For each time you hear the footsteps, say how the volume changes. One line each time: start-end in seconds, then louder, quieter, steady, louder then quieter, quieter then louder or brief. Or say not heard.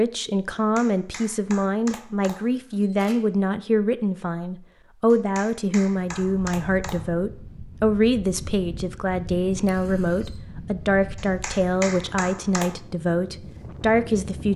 not heard.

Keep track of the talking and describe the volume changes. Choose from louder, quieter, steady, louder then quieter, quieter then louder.
steady.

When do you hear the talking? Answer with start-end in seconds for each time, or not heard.
0.0-14.5.